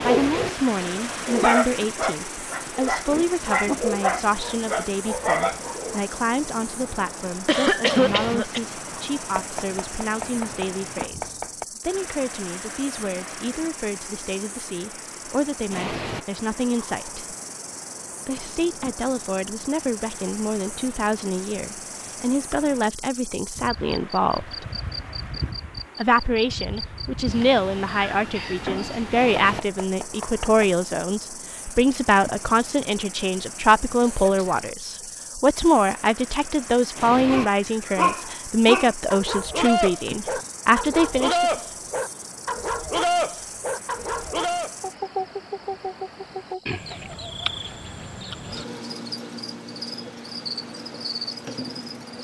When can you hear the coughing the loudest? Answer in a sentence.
The loudest moment of the coughing is at 8 seconds.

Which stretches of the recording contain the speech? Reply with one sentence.
You can hear the speech from 0.0 to 17.4 s, from 18.2 to 24.6 s and from 25.9 to 41.5 s.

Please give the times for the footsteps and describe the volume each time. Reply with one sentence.
You can't hear the footsteps here.